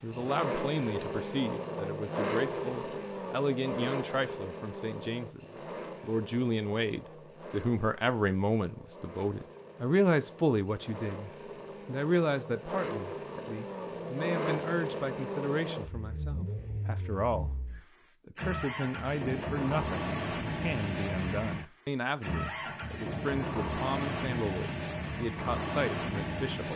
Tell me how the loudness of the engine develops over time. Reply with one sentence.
The volume of the engine goes down, then up.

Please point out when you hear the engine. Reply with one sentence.
You can hear the engine from 0.0 to 26.7 s.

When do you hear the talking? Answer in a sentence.
The talking can be heard from 0.0 to 26.7 s.